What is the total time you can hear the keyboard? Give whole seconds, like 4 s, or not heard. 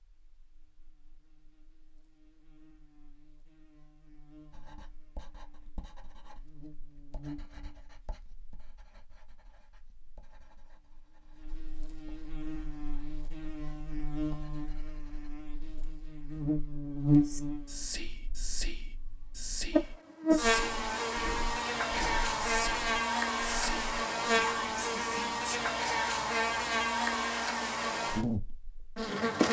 not heard.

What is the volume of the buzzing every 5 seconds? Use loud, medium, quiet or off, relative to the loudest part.
quiet, quiet, quiet, loud, loud, loud.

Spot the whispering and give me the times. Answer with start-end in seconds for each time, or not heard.
17.2-25.7.